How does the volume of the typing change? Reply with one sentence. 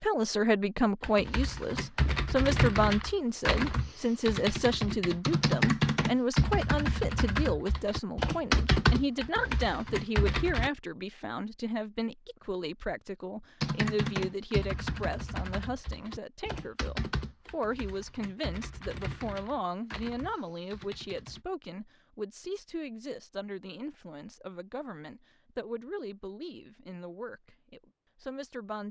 The loudness of the typing goes down.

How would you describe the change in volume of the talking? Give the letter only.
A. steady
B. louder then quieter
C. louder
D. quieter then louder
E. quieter
E.